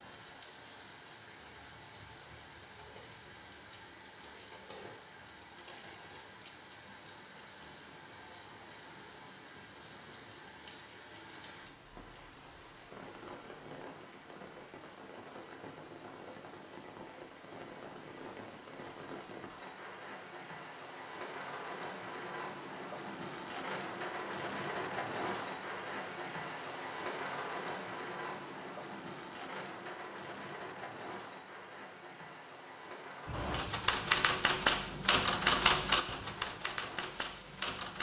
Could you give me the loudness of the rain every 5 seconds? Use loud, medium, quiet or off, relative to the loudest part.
medium, medium, medium, medium, loud, loud, medium, medium.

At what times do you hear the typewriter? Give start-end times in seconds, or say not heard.
33.2-37.9.